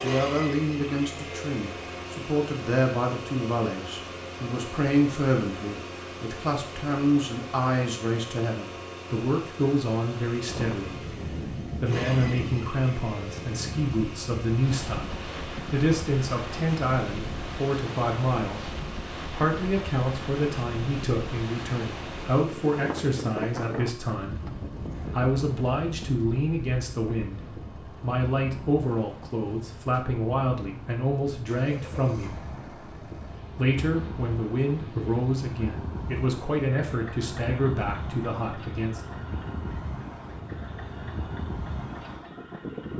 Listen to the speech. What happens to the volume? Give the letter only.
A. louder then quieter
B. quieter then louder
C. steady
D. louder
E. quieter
C.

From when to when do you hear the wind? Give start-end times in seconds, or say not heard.
10.4-42.9.